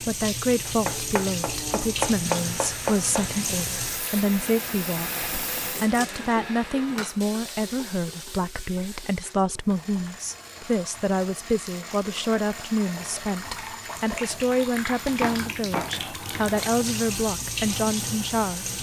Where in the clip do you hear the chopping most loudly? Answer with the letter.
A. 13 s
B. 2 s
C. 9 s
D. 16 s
B.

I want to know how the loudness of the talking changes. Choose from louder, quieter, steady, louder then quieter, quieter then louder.
steady.